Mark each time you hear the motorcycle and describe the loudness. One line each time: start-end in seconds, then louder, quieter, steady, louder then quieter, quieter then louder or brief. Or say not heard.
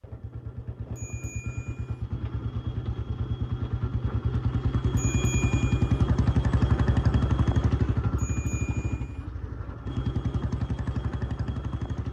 0.0-12.0 louder then quieter.